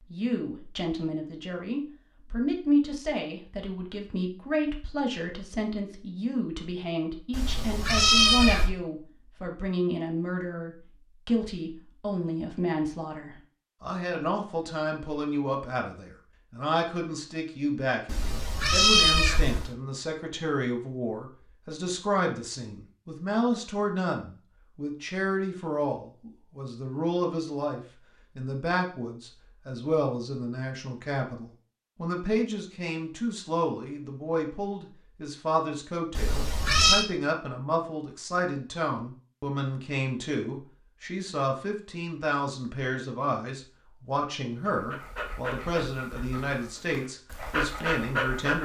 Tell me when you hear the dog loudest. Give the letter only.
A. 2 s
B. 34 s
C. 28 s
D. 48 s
D.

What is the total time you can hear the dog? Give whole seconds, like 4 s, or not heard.
4 s.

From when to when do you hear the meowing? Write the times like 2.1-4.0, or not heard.
7.3-8.7, 18.1-19.7, 36.1-37.0.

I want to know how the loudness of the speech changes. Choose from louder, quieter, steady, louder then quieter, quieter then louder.
steady.